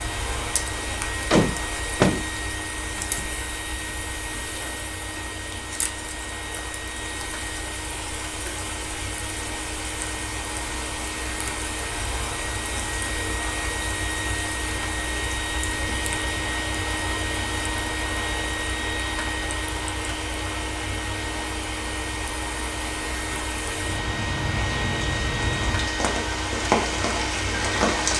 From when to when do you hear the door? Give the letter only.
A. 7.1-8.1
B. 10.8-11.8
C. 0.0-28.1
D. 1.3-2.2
D.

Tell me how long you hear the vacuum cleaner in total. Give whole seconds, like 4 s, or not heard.
28 s.